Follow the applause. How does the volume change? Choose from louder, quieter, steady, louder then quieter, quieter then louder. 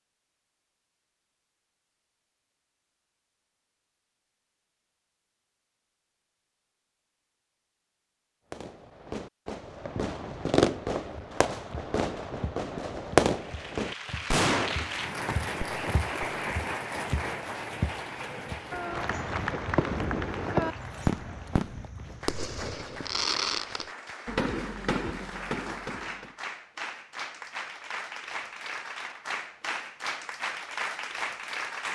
quieter then louder.